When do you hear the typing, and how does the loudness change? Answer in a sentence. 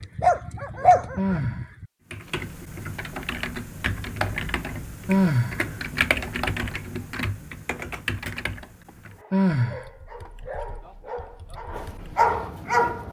The typing can be heard from 2.1 to 12.1 s, getting quieter.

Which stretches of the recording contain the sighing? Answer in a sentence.
You can hear the sighing from 1.1 to 1.7 s, from 5.0 to 5.6 s and from 9.3 to 9.8 s.